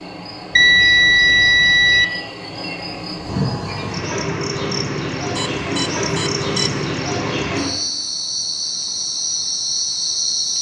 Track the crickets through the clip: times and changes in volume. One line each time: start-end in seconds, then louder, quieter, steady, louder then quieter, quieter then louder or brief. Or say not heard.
0.0-10.5 louder.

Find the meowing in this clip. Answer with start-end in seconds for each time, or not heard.
not heard.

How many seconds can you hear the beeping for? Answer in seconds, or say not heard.
3 s.